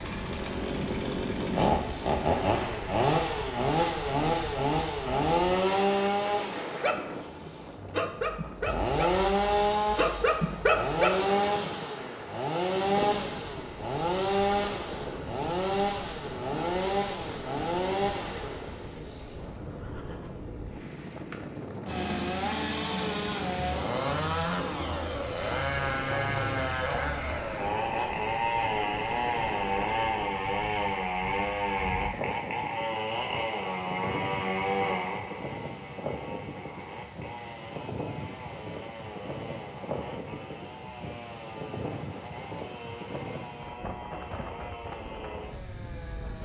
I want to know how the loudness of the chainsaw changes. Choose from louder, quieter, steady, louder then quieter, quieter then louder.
quieter.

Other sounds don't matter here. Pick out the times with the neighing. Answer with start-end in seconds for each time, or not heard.
19.4-20.4.